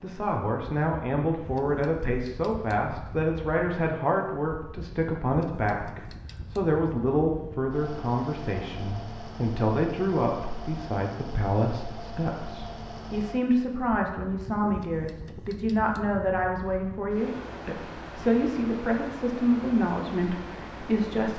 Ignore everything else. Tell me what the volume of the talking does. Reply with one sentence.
The volume of the talking stays about the same.